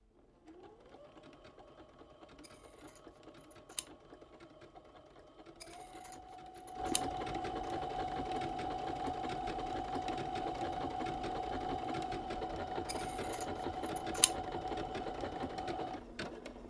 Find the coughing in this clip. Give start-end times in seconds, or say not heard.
not heard.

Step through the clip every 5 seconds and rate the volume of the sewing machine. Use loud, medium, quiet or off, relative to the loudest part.
quiet, loud, loud, loud.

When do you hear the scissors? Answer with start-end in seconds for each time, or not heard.
2.5-3.9, 5.6-7.0, 12.9-14.3.